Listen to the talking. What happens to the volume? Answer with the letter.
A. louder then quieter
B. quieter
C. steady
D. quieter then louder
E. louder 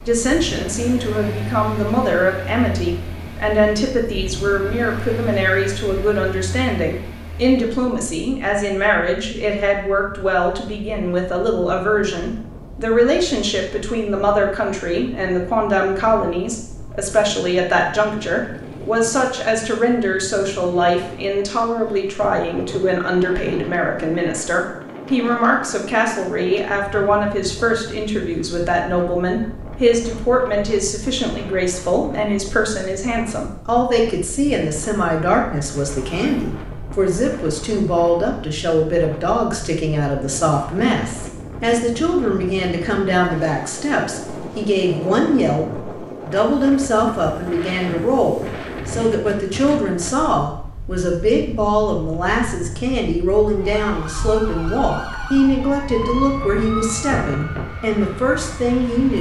C.